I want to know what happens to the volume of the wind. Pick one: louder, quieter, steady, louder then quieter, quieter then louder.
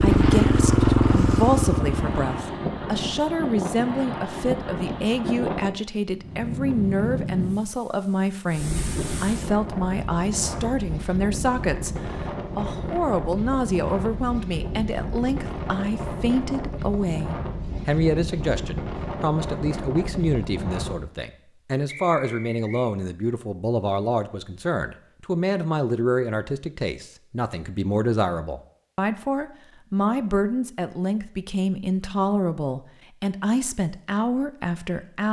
steady.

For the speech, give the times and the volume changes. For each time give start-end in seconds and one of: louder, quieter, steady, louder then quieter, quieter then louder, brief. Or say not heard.
0.0-35.2 steady.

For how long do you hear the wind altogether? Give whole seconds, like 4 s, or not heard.
21 s.